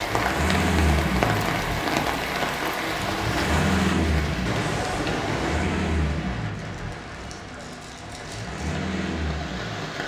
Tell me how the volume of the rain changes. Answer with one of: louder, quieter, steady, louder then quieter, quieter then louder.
quieter.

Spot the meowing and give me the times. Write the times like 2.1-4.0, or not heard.
4.5-5.7.